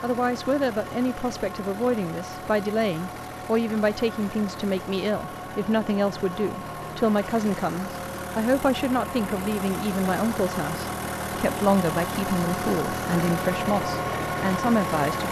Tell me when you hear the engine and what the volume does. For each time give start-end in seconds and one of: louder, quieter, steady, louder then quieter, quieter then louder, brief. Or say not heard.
0.0-15.2 louder.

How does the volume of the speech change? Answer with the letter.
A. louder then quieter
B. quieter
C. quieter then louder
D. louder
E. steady
E.